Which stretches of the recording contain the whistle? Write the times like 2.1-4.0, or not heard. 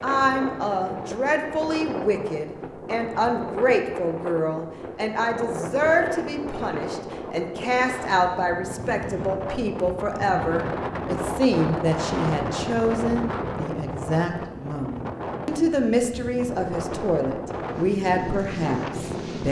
not heard.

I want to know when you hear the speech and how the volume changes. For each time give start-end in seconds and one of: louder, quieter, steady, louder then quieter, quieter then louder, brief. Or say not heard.
0.0-19.4 steady.